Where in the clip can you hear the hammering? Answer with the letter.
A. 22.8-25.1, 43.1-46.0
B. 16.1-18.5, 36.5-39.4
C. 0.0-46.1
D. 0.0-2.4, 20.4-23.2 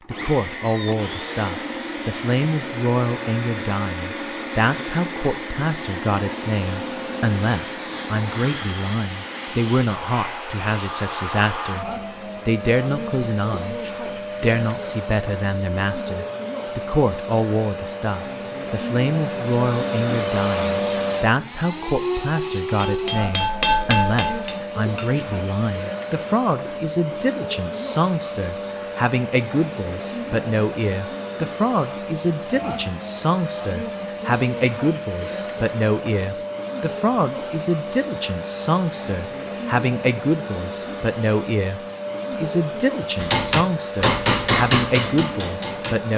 A.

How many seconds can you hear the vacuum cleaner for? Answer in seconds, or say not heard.
46 s.